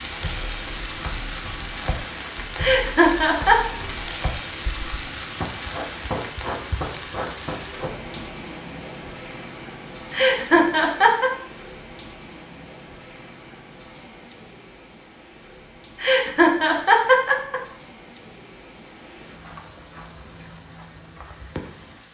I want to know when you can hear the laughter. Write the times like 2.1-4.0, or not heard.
2.5-3.5, 10.1-11.3, 16.0-17.6.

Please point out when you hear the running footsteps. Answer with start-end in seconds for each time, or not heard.
0.1-8.2.